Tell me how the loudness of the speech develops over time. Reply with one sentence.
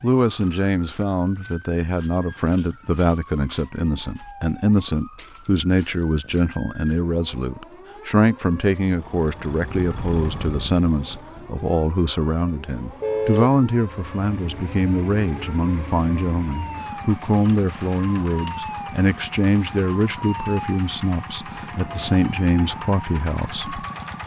The loudness of the speech stays about the same.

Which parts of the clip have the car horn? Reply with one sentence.
You can hear the car horn from 13.0 to 13.6 s.